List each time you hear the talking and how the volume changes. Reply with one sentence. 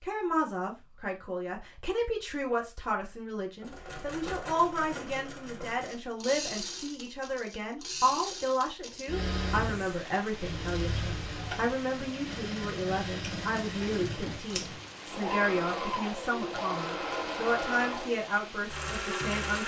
You can hear the talking from 0.0 to 19.6 s, at a steady volume.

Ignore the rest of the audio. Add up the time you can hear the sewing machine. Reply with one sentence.
You can hear the sewing machine for 16 seconds altogether.